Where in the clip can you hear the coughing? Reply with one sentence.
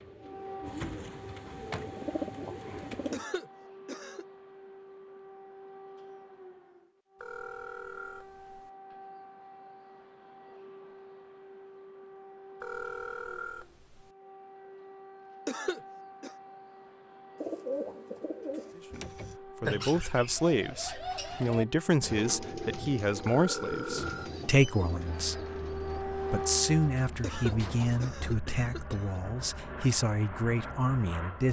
You can hear the coughing from 3.1 to 4.2 s, from 15.4 to 16.4 s and from 27.2 to 29.2 s.